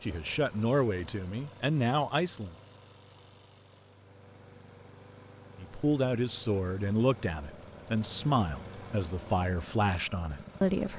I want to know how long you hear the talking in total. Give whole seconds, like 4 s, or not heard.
8 s.